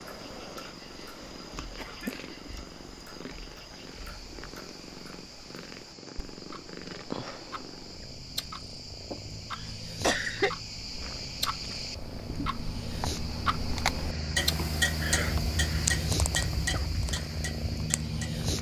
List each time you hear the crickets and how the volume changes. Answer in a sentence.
The crickets can be heard from 0.0 to 18.5 s, getting louder.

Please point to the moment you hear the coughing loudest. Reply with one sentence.
The volume of the coughing peaks at 10 seconds.